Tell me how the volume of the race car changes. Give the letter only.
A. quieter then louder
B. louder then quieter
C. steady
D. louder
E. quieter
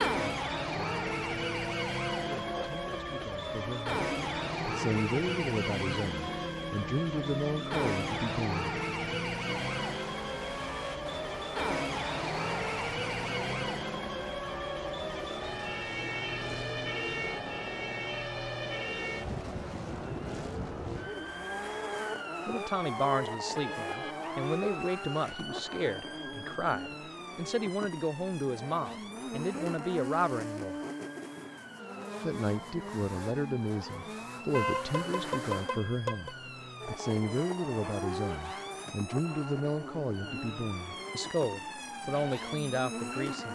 C.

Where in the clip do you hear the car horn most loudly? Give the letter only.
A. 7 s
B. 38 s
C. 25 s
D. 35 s
D.